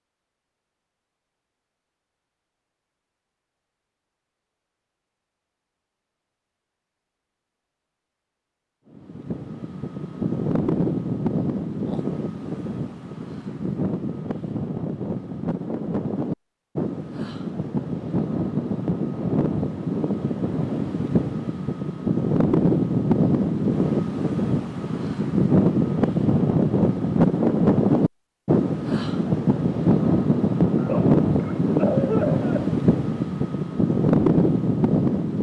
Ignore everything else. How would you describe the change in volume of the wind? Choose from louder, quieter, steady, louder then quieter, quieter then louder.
louder.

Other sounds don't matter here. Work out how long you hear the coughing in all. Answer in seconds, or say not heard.
2 s.